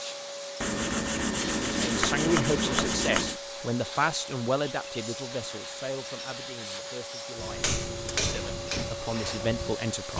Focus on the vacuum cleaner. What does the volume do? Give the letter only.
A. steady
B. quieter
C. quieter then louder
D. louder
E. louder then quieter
A.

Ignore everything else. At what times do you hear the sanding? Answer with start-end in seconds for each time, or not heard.
0.6-3.4, 5.3-7.1.